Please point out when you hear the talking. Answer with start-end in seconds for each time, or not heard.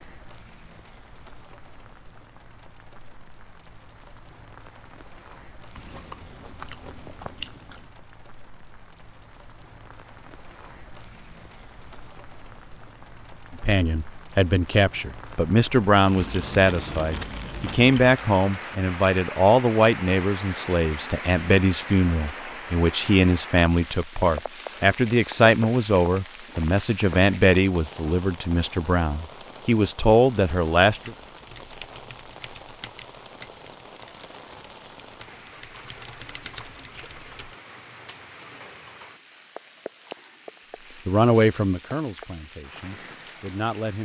13.6-31.1, 41.0-44.0.